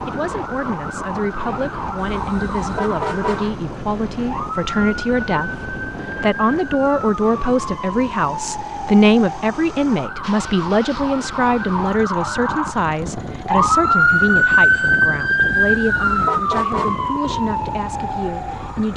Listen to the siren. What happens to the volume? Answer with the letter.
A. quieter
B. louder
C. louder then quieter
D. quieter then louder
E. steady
B.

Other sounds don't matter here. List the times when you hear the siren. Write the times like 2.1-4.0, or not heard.
0.0-18.9.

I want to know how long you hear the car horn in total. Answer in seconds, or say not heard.
3 s.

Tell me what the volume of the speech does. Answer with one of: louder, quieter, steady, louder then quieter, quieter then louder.
louder then quieter.